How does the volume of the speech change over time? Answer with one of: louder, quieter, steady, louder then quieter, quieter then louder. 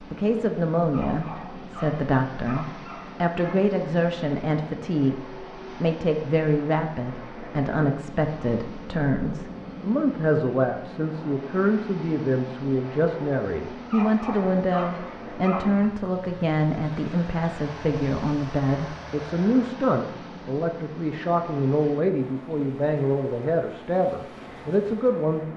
steady.